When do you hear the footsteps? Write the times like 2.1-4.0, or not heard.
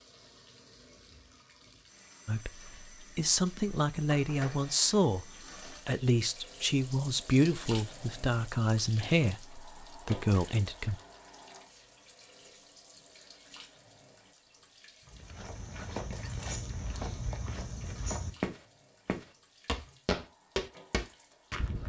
15.1-21.8.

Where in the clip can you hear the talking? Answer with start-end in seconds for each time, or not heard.
2.2-5.2, 5.8-11.0.